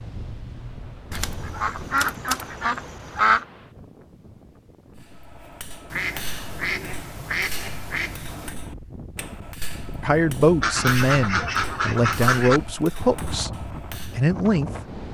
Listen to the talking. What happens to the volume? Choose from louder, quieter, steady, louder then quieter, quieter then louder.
quieter then louder.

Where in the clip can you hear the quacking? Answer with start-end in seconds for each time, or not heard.
1.1-3.5, 5.9-8.6, 10.6-12.6.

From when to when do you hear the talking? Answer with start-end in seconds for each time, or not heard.
10.0-14.7.